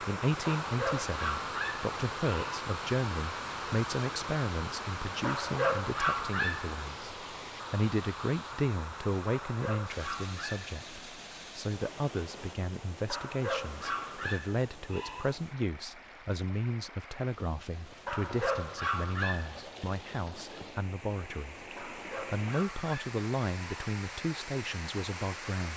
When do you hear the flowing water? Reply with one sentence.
You can hear the flowing water from 0.0 to 25.7 s.